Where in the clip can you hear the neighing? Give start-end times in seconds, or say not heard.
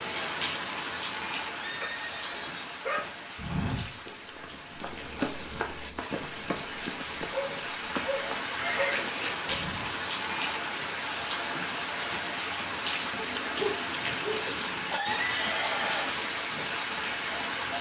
1.6-2.5, 8.6-9.2, 14.9-16.1.